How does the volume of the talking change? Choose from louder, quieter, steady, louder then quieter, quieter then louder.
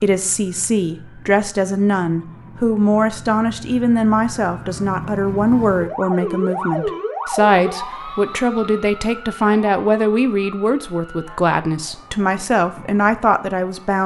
steady.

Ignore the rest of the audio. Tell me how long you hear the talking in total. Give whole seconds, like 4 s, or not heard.
14 s.